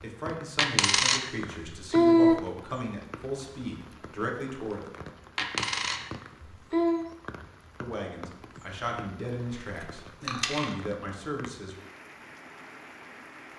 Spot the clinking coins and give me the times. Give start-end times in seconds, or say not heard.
0.6-2.4, 5.3-7.0, 9.6-10.8.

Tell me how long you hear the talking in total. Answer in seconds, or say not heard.
9 s.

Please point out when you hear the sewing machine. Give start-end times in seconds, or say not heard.
not heard.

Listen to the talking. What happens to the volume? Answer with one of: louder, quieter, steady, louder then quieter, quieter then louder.
steady.